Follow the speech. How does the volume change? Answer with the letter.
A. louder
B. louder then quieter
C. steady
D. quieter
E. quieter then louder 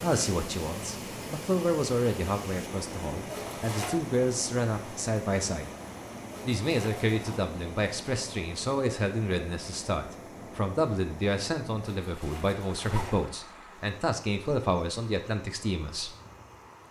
C.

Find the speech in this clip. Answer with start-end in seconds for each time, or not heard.
0.0-5.7, 6.5-16.1.